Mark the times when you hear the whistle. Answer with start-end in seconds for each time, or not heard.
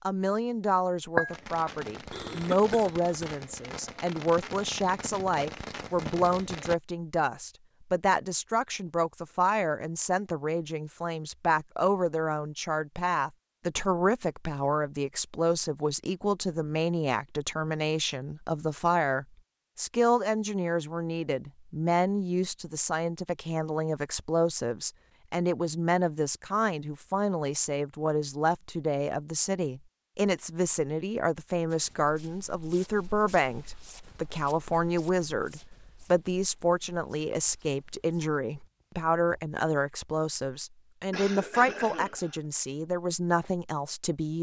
not heard.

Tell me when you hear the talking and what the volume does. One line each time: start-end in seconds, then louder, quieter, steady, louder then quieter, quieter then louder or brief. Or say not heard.
0.0-44.3 steady.